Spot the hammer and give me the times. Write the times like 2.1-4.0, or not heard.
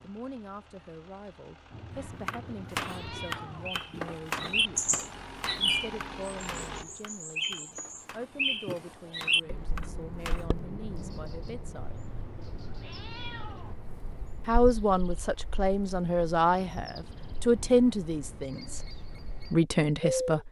1.9-10.4.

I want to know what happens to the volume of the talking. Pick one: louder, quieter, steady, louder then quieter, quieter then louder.
louder.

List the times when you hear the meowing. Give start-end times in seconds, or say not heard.
1.7-3.7, 11.8-13.8.